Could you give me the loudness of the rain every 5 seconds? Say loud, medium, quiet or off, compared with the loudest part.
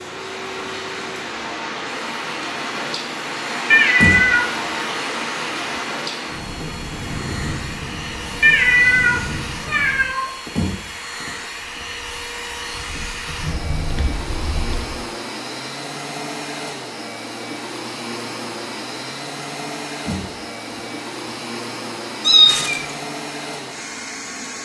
loud, loud, medium, off, off.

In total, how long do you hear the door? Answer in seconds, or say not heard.
3 s.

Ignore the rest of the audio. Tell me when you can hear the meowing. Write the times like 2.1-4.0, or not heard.
3.7-4.5, 8.4-10.3, 22.2-22.9.